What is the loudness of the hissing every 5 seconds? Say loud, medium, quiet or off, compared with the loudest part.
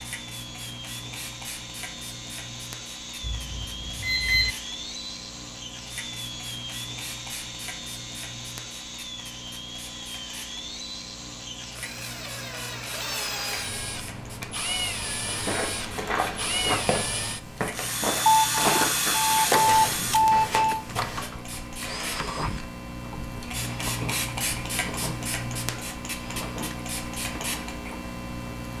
medium, medium, medium, medium, loud, loud.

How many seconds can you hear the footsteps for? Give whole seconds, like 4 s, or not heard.
6 s.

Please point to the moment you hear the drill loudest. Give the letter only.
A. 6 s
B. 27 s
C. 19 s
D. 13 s
C.